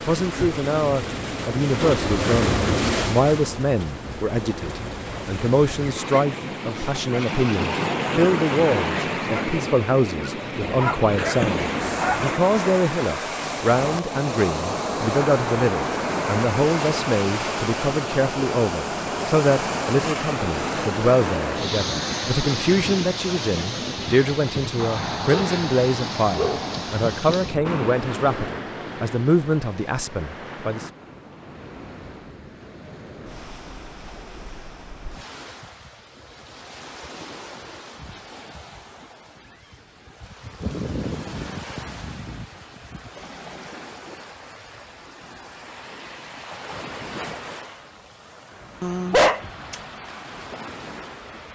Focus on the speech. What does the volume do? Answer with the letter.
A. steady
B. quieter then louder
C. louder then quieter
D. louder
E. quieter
A.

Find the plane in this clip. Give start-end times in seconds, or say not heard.
not heard.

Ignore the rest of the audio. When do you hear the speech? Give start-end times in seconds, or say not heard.
0.1-30.9.